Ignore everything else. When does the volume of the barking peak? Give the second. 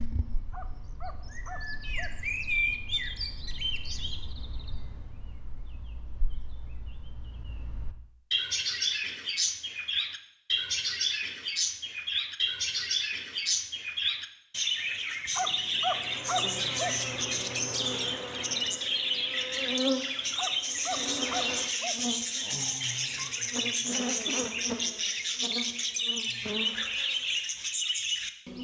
16 s.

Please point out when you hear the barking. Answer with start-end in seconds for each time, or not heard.
0.5-2.1, 15.3-17.0, 20.4-22.0.